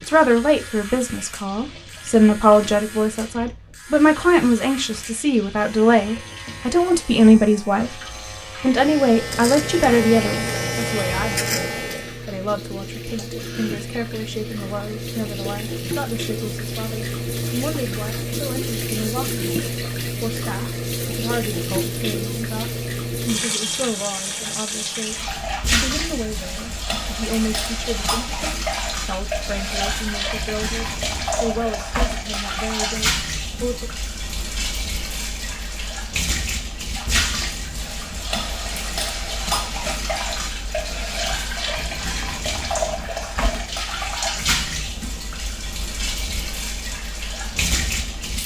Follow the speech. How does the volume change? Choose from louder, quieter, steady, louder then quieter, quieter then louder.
quieter.